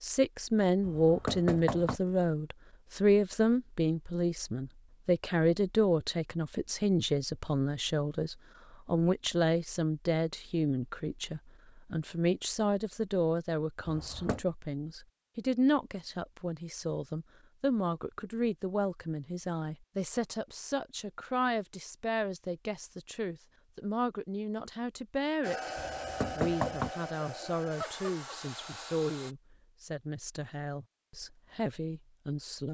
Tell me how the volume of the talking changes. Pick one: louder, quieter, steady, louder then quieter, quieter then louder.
quieter.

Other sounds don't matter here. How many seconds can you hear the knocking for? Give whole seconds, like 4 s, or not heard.
3 s.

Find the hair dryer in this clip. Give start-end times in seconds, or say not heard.
25.4-29.4.